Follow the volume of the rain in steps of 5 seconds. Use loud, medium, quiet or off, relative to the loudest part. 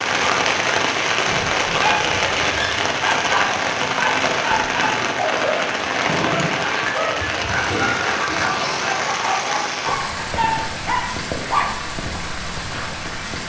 loud, loud, medium.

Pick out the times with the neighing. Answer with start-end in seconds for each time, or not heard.
7.7-9.1.